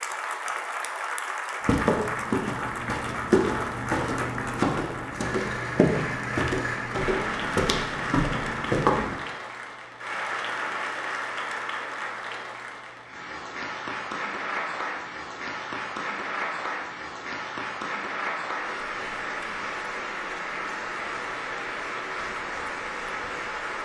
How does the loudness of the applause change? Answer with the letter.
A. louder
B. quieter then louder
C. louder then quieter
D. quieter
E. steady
E.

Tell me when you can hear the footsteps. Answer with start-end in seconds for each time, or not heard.
1.6-9.2.